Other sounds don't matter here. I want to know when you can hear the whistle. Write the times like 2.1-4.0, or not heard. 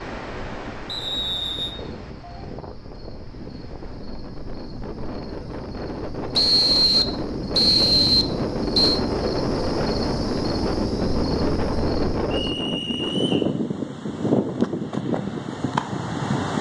0.8-1.8, 6.3-9.0, 12.3-13.5.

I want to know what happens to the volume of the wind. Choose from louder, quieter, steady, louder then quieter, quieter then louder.
louder.